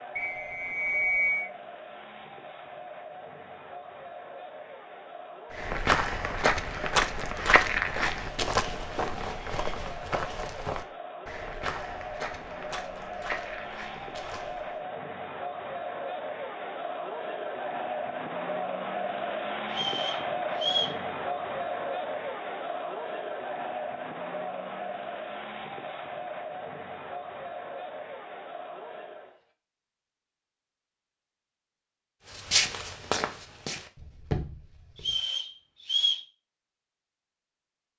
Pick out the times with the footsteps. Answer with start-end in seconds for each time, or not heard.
5.5-14.8, 32.3-35.2.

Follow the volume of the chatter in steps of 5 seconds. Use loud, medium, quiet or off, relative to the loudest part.
medium, medium, medium, loud, loud, medium, off, off.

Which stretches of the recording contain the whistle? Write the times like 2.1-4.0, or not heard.
0.1-1.5, 19.7-20.9, 35.0-36.2.